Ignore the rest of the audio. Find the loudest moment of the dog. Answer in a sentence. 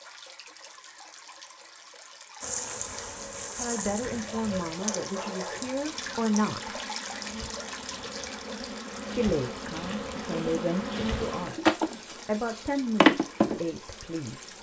The loudest moment of the dog is at 5 seconds.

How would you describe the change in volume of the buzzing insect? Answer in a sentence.
The loudness of the buzzing insect goes down, then up.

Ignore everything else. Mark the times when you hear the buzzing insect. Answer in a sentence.
You can hear the buzzing insect from 2.4 to 14.5 s.